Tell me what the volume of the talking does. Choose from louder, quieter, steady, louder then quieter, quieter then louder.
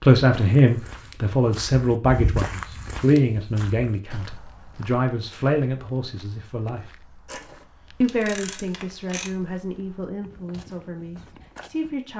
quieter.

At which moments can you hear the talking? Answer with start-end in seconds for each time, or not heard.
0.0-6.8, 8.0-12.1.